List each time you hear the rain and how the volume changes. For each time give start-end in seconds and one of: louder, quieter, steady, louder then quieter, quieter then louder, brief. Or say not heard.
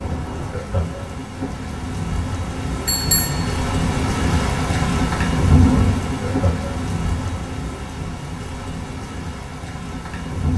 0.0-10.5 louder then quieter.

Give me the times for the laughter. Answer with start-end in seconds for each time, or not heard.
0.5-1.1, 6.2-6.8.